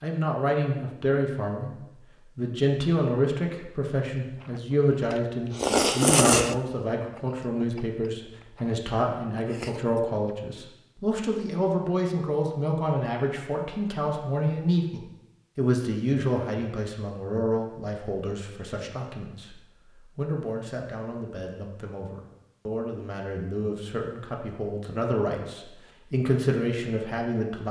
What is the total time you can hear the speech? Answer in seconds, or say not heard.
27 s.